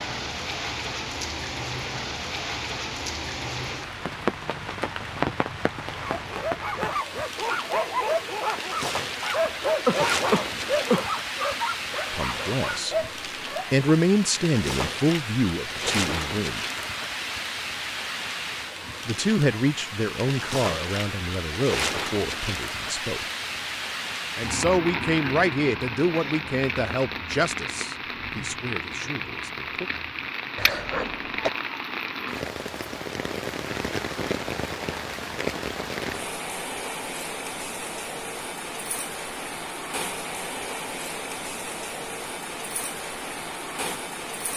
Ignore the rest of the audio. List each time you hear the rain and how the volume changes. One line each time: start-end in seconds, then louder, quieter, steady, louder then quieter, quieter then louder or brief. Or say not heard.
0.0-44.5 steady.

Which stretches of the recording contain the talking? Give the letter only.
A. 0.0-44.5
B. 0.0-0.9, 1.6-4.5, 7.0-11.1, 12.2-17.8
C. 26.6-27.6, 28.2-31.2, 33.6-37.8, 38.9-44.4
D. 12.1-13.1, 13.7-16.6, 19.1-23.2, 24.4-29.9
D.